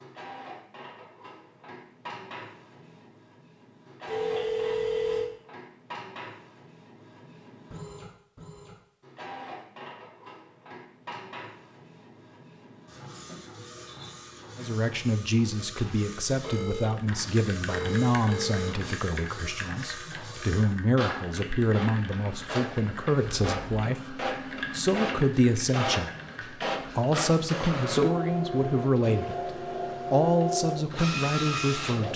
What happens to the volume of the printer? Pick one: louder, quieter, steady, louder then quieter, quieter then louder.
louder.